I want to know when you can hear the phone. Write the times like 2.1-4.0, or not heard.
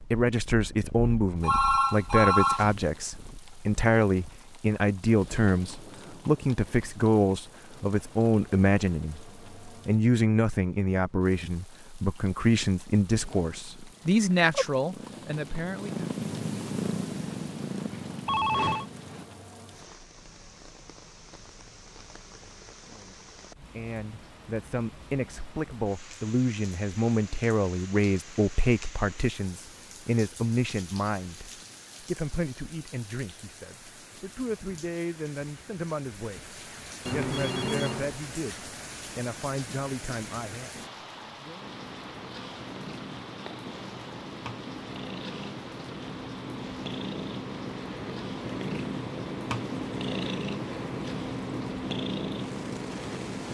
1.4-2.7, 18.2-18.9, 37.0-38.1.